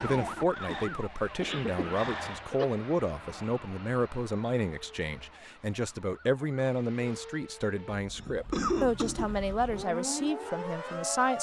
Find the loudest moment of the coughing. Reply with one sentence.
The volume of the coughing peaks at 9 seconds.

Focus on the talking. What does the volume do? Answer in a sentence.
The loudness of the talking stays about the same.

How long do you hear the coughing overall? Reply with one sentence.
The coughing can be heard for 3 seconds in total.